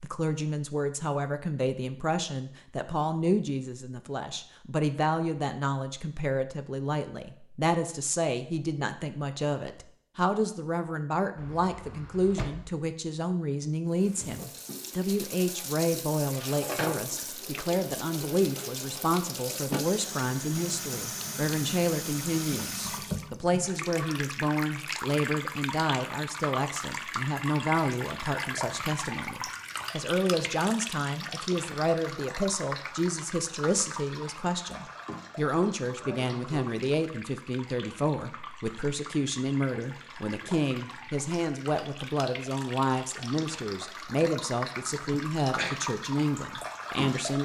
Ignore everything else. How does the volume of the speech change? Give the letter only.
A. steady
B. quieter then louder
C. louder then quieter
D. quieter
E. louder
A.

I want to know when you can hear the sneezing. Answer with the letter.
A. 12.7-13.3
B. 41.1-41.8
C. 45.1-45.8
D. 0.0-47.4
C.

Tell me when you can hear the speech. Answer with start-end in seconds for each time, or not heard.
0.0-47.4.